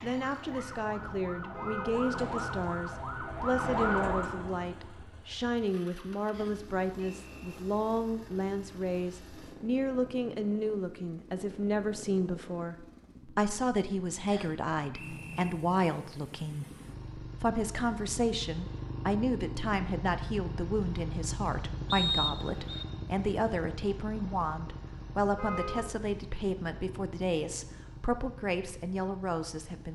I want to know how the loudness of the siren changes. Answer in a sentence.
The volume of the siren goes up.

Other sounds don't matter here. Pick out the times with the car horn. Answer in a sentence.
You can hear the car horn from 1.5 to 2.0 s and from 25.4 to 25.9 s.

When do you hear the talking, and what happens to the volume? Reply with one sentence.
You can hear the talking from 0.0 to 29.8 s, at a steady volume.